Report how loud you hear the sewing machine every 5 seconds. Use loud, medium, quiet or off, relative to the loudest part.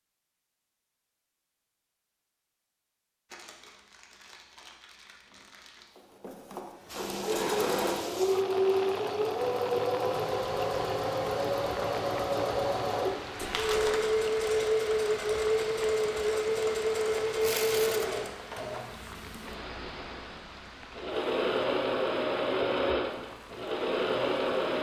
off, loud, loud, loud, loud.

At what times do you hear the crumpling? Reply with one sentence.
You can hear the crumpling from 3.3 to 5.9 s, from 13.3 to 14.1 s and from 17.4 to 18.1 s.